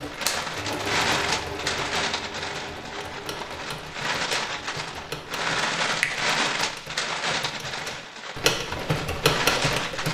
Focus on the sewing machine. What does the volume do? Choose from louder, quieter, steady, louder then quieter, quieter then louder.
quieter.